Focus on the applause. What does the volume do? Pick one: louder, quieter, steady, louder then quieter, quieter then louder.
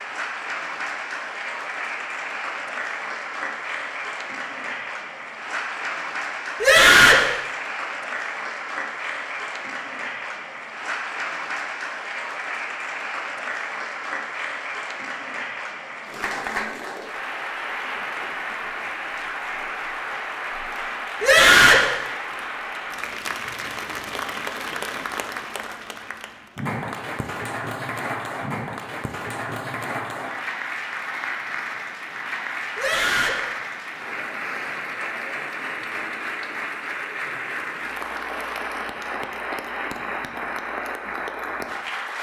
steady.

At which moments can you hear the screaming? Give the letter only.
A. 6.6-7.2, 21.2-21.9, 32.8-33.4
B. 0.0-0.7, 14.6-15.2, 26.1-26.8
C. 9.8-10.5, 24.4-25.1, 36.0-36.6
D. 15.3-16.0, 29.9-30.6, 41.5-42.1
A.